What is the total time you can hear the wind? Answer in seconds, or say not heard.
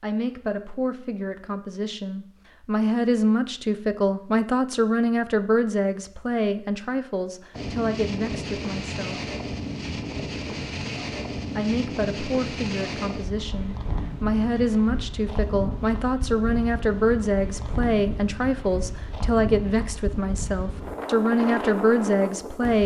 15 s.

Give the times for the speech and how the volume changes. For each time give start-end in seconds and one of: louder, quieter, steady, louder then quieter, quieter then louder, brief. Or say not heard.
0.0-9.2 louder then quieter
11.6-22.8 louder.